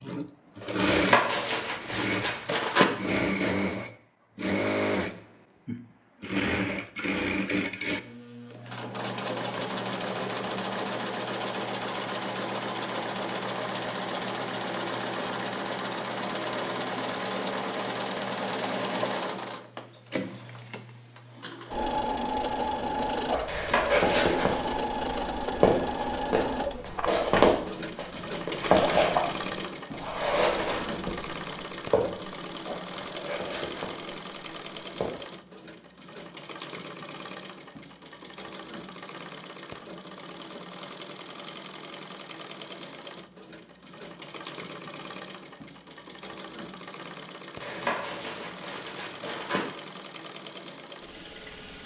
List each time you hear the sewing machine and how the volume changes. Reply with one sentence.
You can hear the sewing machine from 0.0 to 51.8 s, getting quieter.